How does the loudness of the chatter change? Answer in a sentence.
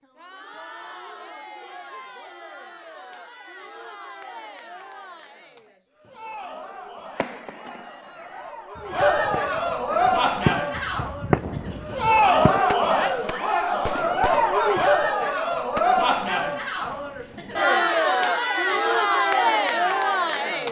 The volume of the chatter goes up.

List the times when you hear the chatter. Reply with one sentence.
The chatter can be heard from 0.0 to 20.6 s.